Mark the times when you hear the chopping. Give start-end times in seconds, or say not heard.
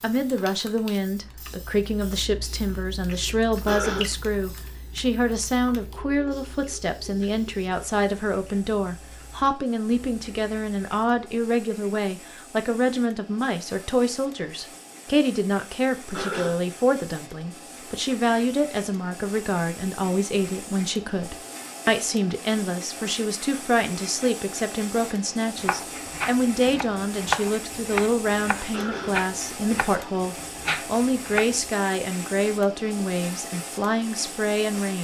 25.6-31.6.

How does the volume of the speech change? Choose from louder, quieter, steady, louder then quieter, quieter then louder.
steady.